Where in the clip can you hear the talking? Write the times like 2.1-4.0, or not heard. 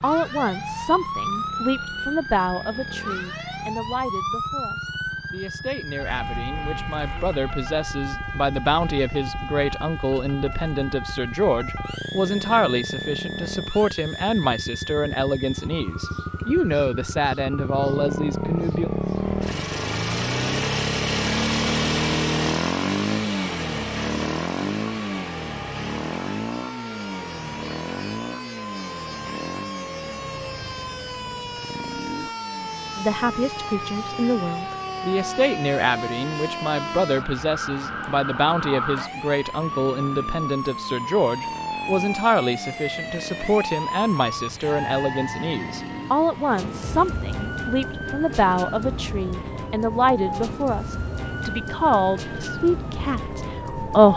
0.0-18.9, 33.0-54.1.